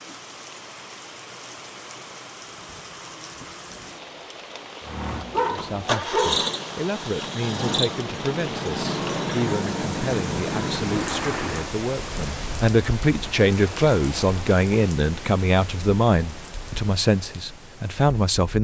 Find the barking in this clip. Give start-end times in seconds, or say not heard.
5.3-6.5.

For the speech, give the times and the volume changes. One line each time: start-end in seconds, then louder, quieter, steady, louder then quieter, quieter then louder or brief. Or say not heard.
5.3-18.6 louder.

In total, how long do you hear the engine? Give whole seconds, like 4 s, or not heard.
7 s.